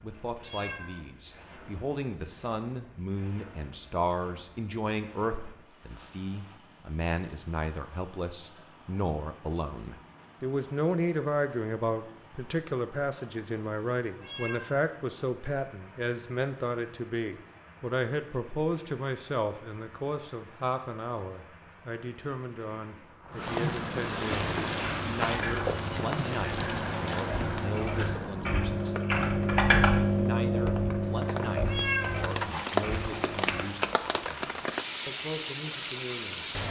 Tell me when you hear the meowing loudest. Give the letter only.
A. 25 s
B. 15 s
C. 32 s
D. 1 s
C.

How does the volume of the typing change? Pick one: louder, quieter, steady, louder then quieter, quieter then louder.
louder then quieter.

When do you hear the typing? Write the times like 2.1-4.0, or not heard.
24.5-33.7.